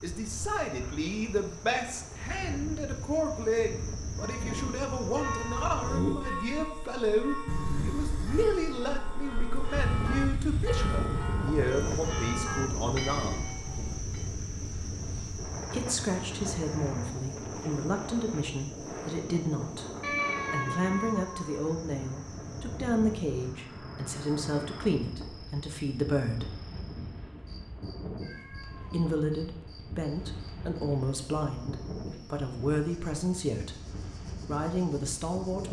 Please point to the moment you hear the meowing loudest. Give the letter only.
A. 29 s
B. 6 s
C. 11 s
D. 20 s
D.